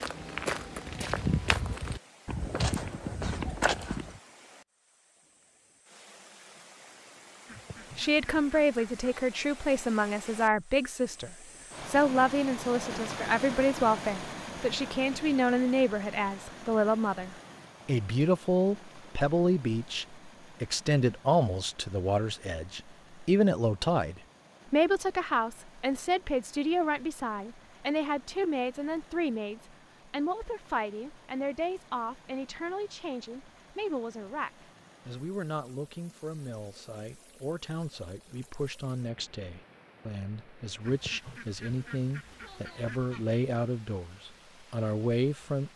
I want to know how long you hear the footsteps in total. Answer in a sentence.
You can hear the footsteps for 4 seconds altogether.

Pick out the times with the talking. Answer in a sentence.
The talking can be heard from 8.0 to 45.7 s.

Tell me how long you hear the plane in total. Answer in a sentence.
You can't hear the plane here.